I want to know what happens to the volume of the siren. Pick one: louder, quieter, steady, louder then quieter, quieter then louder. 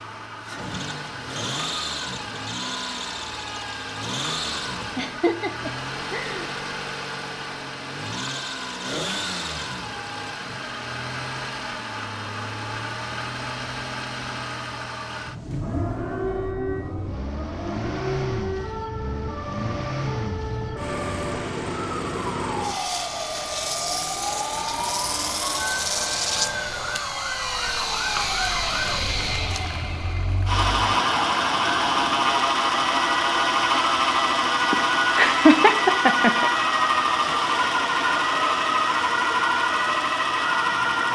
louder.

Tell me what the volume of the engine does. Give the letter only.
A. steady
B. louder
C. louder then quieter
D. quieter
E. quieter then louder
B.